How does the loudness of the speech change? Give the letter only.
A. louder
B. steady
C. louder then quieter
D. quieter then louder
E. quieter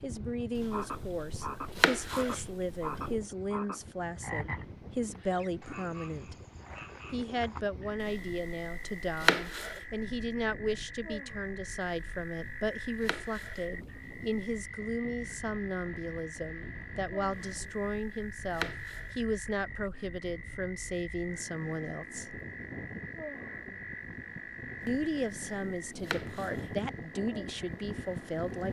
B.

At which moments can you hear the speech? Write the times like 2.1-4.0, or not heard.
0.0-6.3, 7.1-22.4, 24.9-28.6.